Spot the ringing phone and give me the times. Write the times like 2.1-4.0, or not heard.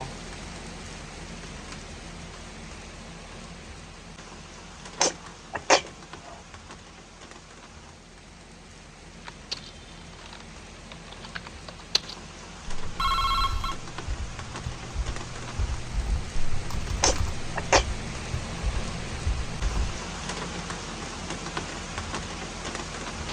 12.9-13.8.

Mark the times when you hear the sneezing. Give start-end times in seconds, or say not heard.
5.0-6.3, 17.0-17.9.